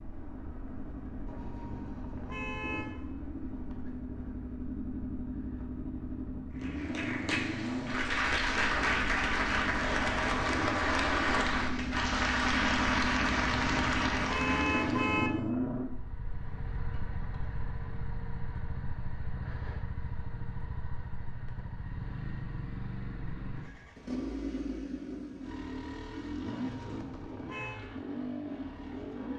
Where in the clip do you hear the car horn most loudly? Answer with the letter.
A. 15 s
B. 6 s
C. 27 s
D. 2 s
A.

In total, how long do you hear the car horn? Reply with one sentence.
The car horn can be heard for 5 seconds in total.